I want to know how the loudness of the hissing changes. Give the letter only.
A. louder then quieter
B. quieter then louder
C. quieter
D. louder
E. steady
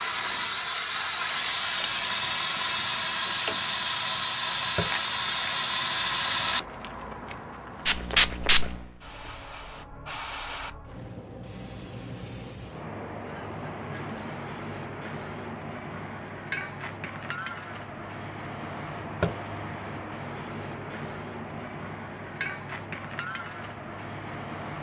C.